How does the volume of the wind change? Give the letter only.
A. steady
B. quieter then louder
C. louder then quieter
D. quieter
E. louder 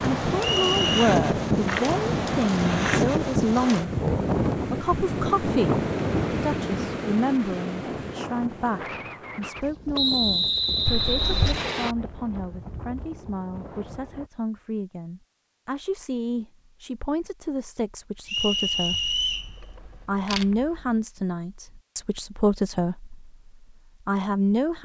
D.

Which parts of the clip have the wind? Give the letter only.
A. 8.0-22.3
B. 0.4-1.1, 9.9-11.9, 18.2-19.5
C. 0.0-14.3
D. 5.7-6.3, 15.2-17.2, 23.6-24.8
C.